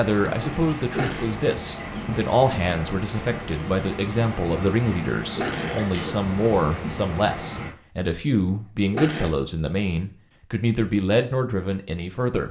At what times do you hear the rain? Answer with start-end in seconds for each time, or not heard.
0.0-7.7.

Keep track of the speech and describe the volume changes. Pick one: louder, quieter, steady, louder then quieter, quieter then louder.
steady.